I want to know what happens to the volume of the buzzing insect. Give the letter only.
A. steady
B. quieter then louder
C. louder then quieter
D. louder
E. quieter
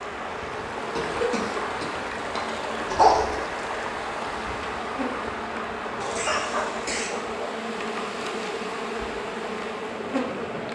D.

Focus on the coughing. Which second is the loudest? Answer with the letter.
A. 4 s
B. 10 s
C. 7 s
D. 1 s
D.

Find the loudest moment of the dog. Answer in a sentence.
The loudest moment of the dog is at 3 seconds.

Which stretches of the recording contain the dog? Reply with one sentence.
You can hear the dog from 2.9 to 3.4 s and from 6.0 to 7.4 s.